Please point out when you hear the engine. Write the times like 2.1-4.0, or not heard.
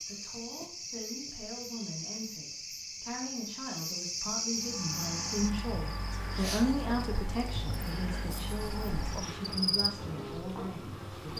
4.5-9.6.